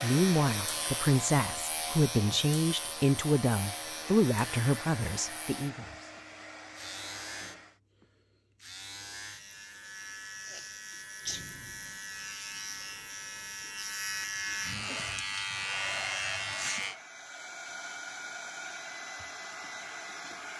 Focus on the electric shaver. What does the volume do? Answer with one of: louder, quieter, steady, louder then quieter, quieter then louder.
quieter then louder.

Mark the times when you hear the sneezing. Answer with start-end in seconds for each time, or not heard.
10.4-11.4.